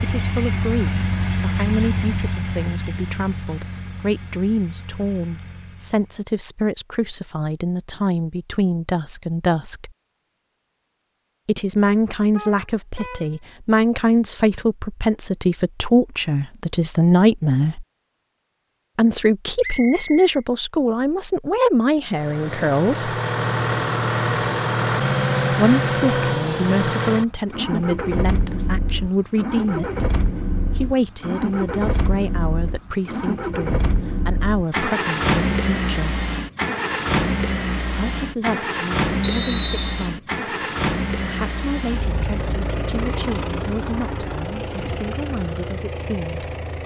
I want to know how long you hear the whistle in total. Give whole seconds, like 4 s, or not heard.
2 s.